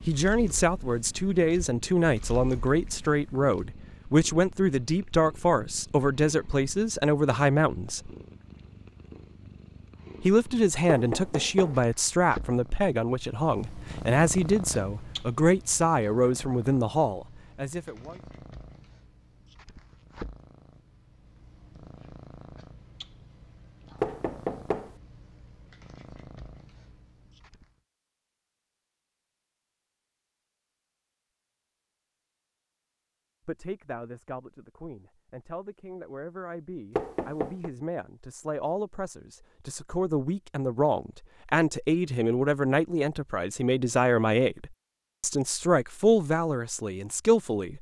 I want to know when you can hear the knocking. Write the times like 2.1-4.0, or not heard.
10.8-11.8, 24.0-24.9, 37.0-37.7.